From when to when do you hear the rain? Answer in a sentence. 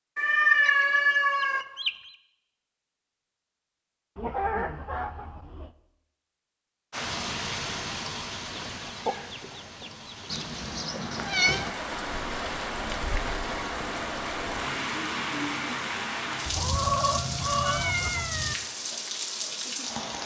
You can hear the rain from 6.9 to 20.2 s.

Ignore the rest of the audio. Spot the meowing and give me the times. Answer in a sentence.
You can hear the meowing from 0.1 to 1.6 s, from 10.3 to 11.7 s and from 16.6 to 18.6 s.